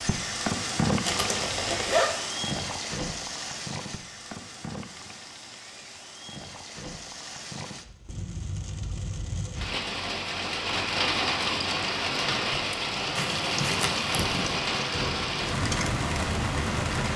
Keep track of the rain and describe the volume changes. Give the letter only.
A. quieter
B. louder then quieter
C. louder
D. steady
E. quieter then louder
E.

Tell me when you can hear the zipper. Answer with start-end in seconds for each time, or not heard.
1.1-2.1, 13.2-14.6.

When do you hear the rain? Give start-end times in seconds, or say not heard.
0.0-17.1.